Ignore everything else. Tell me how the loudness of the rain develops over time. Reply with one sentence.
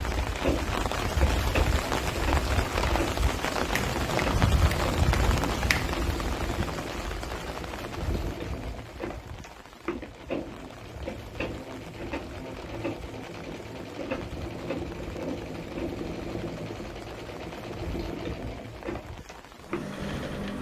The volume of the rain goes down.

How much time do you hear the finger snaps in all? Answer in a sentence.
The finger snaps can be heard for 2 seconds in total.